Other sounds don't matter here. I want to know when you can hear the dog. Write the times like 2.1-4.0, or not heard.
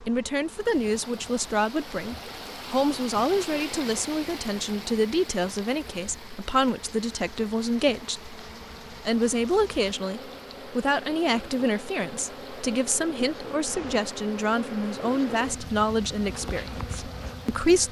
not heard.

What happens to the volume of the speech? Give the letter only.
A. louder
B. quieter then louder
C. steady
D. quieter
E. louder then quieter
C.